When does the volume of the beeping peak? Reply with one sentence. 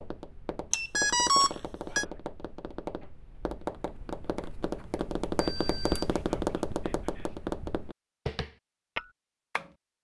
The volume of the beeping peaks at 1 second.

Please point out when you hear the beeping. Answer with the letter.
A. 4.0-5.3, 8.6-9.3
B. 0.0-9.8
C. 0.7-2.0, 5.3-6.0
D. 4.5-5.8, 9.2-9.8
C.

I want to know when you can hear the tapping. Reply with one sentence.
The tapping can be heard from 0.0 to 9.8 s.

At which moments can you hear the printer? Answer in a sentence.
You can't hear the printer here.